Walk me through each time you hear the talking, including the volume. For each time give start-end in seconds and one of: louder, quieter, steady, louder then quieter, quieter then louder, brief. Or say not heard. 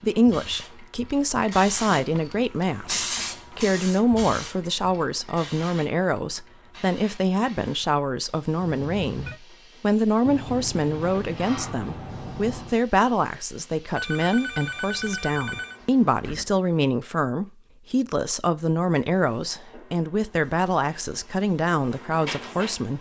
0.0-22.9 steady.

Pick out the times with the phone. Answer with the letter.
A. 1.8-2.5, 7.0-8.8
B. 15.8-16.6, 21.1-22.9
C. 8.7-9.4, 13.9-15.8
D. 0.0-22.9
C.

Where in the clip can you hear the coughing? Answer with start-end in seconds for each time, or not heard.
not heard.